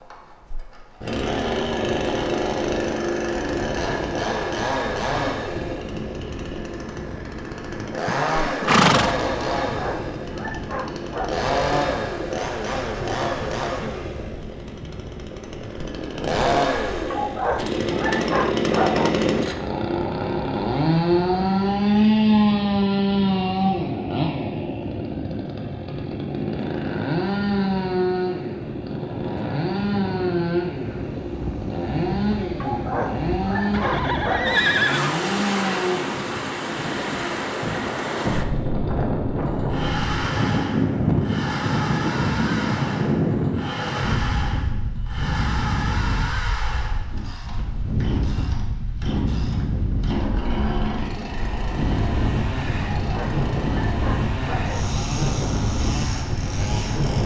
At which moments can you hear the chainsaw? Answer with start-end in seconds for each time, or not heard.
0.0-57.2.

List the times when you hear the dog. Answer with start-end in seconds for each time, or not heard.
9.7-11.4, 17.1-19.1, 32.6-34.6, 52.8-54.9.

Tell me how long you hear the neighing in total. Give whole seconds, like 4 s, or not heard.
3 s.